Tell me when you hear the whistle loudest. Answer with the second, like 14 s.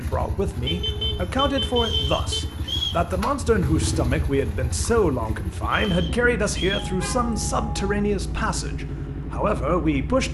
3 s.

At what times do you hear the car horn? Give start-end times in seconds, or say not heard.
0.7-2.4, 6.8-8.0.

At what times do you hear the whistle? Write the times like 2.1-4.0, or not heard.
1.8-3.0, 5.7-7.0.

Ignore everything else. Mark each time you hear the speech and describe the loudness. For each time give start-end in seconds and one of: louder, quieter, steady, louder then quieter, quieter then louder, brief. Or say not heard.
0.0-10.2 steady.